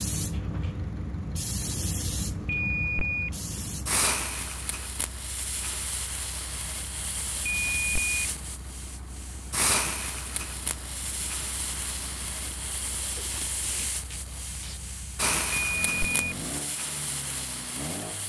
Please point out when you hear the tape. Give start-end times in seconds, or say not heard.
12.9-14.8.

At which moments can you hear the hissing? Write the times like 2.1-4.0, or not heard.
0.0-18.2.